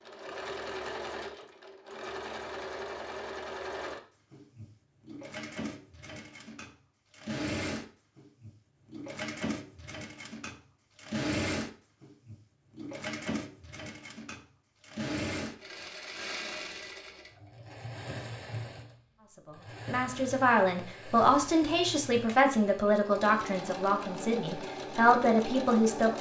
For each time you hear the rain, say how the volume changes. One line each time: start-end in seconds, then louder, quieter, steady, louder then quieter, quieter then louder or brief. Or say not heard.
not heard.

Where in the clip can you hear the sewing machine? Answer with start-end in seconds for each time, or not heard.
0.0-26.1.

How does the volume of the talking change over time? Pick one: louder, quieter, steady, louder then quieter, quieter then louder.
quieter then louder.